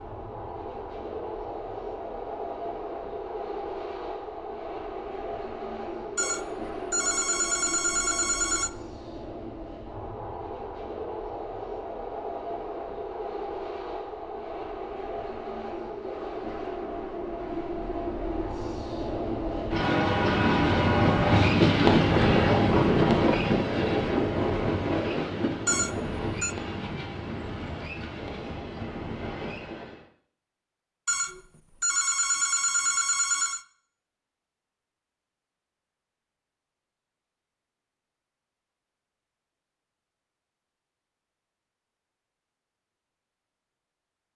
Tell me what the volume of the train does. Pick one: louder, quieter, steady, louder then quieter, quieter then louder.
louder then quieter.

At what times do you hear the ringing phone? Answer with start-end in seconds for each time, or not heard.
6.2-8.7, 25.6-26.6, 31.1-33.6.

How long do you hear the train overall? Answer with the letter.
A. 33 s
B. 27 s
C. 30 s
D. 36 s
C.